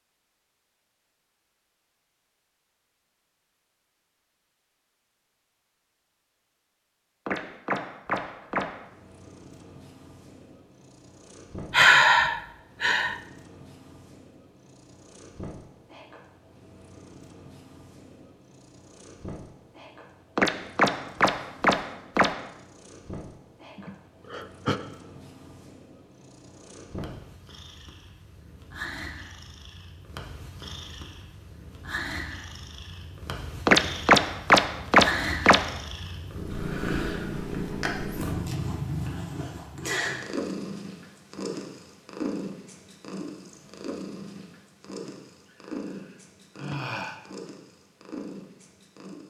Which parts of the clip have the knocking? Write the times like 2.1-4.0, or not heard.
7.2-8.7, 20.4-22.3, 33.6-35.6.